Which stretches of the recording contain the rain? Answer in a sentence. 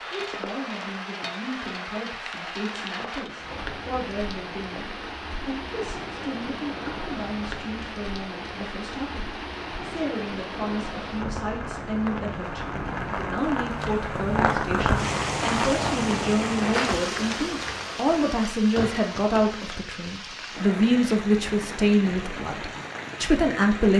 The rain can be heard from 0.0 to 23.9 s.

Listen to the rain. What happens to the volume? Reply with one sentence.
The volume of the rain goes up, then down.